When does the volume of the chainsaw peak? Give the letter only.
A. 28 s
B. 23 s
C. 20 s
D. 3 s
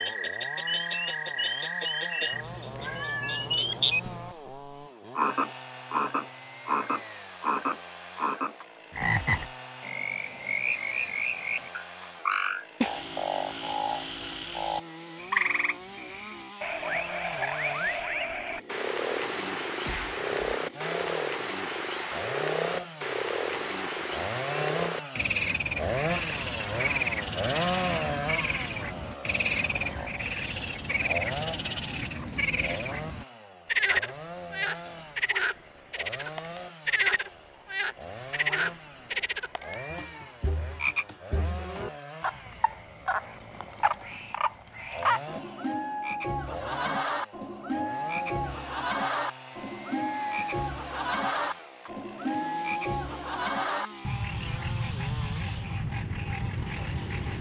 A.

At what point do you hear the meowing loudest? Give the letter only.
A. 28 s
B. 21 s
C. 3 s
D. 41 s
C.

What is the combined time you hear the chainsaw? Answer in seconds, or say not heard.
57 s.